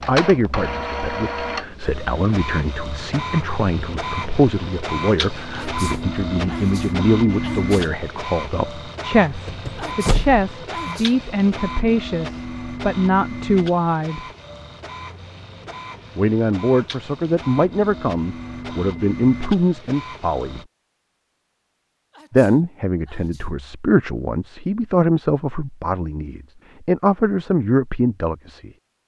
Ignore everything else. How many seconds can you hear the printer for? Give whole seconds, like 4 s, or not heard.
21 s.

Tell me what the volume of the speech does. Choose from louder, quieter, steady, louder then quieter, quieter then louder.
steady.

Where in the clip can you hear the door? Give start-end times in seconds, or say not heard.
9.4-10.4.